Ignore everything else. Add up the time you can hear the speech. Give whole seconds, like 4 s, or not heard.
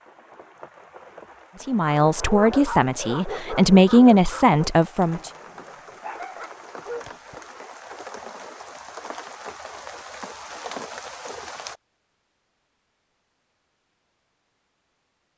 4 s.